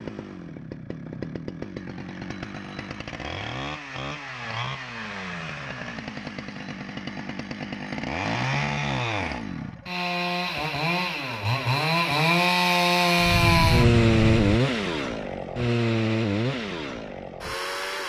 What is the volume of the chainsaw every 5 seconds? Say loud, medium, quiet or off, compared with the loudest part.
quiet, medium, loud, medium.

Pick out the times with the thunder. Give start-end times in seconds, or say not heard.
13.2-14.6.